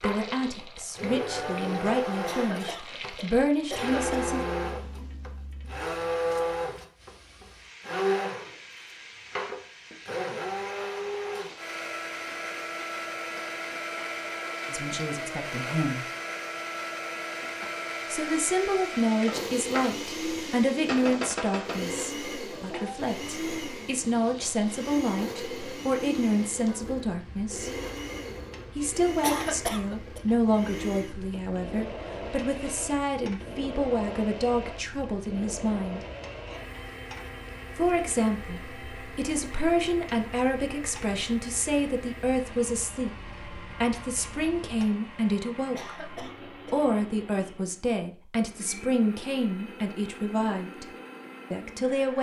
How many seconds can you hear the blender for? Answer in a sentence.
You can hear the blender for 52 seconds altogether.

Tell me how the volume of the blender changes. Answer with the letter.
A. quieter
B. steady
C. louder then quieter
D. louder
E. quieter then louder
A.